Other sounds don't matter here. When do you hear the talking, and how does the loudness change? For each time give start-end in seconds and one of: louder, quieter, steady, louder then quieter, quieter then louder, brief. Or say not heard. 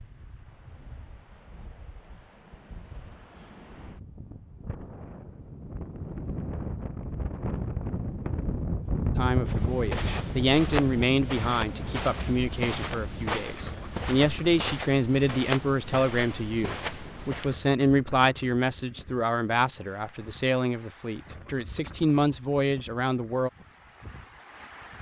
9.2-23.5 steady.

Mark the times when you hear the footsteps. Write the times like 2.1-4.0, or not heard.
9.4-17.6.